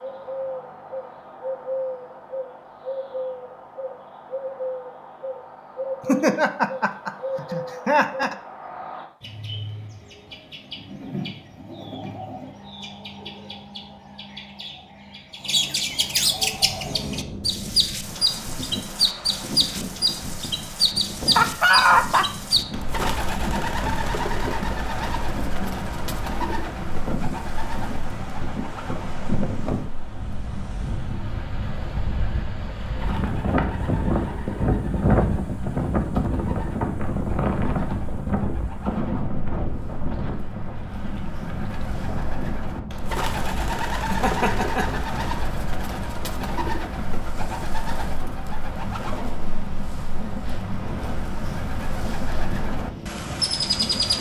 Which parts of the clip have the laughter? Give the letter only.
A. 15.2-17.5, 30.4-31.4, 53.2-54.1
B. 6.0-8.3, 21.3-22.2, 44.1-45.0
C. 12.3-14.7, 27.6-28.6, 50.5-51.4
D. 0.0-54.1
B.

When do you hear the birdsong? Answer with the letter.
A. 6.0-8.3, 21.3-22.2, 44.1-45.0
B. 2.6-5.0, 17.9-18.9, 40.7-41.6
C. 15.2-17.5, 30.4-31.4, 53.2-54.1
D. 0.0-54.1
D.